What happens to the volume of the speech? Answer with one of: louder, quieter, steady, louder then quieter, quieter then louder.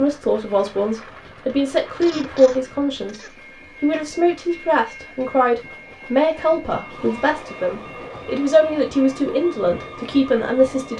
steady.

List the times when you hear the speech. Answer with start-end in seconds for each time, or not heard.
0.0-3.2, 3.8-10.9.